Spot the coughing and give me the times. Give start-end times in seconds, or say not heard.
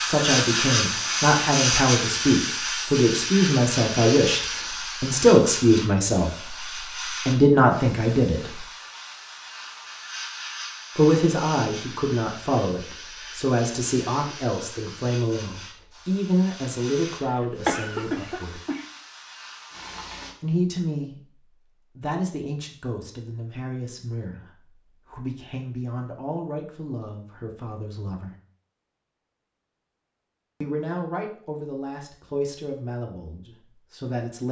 17.2-18.9.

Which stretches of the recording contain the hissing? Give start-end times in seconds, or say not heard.
0.0-20.4.